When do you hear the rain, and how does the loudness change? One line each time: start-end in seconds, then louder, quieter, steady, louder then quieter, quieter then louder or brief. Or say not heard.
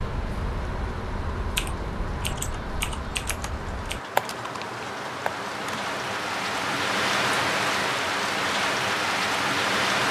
0.0-10.0 louder.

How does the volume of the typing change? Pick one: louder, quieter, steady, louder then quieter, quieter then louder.
louder then quieter.